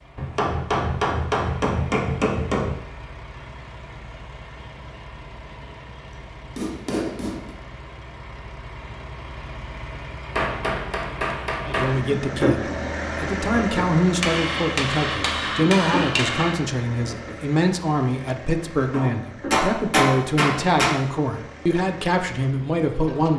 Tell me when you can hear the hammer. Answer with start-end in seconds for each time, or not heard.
0.1-2.8, 6.5-7.5, 10.3-11.9, 14.2-16.6, 18.9-20.9.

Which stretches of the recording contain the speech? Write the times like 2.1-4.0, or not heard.
11.7-23.3.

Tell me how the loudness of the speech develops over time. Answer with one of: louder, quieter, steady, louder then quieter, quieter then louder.
steady.